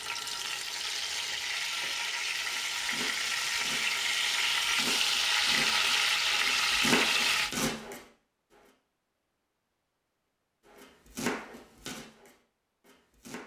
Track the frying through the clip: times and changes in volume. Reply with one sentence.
The frying can be heard from 0.0 to 7.5 s, getting louder.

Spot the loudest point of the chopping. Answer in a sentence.
The volume of the chopping peaks at 7 seconds.